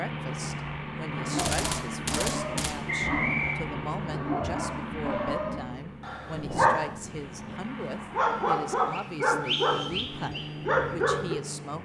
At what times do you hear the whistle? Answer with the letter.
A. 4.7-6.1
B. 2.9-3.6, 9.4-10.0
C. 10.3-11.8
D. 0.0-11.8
B.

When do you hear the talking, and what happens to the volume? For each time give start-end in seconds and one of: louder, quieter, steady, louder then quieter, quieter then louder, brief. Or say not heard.
0.0-11.8 steady.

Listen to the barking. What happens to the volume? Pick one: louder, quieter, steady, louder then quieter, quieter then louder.
louder.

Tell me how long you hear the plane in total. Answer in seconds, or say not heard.
12 s.